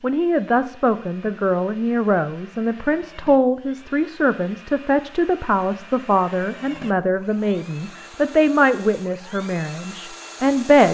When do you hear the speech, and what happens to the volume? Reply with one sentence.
You can hear the speech from 0.0 to 10.8 s, at a steady volume.